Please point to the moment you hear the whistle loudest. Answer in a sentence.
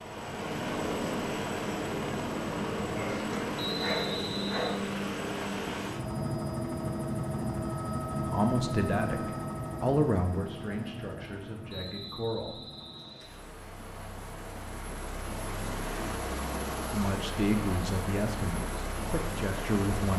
The volume of the whistle peaks at 4 seconds.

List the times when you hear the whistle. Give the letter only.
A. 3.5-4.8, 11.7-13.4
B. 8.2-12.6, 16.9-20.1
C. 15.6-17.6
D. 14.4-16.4
A.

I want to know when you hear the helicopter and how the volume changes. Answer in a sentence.
You can hear the helicopter from 0.0 to 20.1 s, getting quieter then louder.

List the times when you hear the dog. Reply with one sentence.
You can hear the dog from 2.8 to 4.8 s.